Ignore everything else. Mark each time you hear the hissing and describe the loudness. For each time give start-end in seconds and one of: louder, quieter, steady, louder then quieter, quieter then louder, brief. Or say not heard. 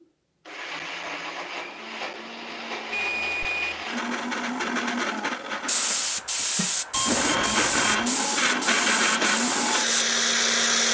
5.7-10.6 steady.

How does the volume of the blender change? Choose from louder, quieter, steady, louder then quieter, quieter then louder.
louder.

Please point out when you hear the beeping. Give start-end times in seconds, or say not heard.
2.9-3.9, 6.9-8.1.